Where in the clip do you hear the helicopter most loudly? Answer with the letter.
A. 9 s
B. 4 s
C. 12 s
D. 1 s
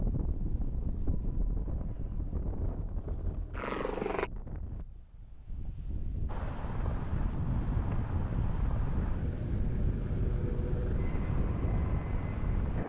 B.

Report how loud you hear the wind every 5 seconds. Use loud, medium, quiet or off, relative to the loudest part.
medium, loud, loud.